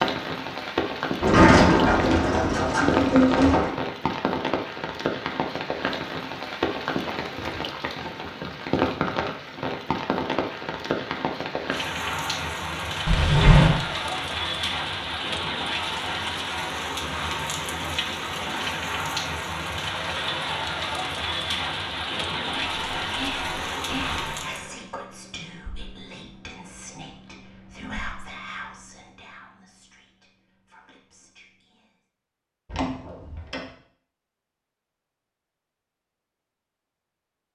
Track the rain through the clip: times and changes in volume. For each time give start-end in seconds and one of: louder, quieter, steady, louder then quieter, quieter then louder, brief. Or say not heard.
0.0-24.7 steady.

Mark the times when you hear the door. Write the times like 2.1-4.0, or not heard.
1.2-3.7, 13.1-13.8, 32.6-33.6.